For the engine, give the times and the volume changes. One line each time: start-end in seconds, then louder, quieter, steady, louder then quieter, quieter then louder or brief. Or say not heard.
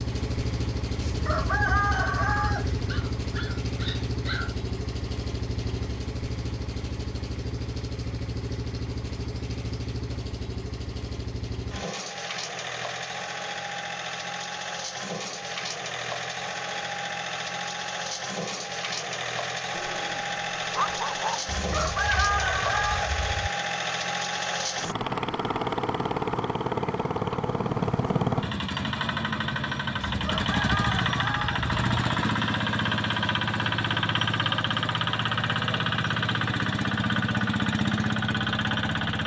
0.0-39.2 louder.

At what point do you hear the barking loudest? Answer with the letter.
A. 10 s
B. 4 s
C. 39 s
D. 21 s
D.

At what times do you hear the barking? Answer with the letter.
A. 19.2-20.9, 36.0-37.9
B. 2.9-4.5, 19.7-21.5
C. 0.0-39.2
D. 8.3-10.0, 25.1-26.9
B.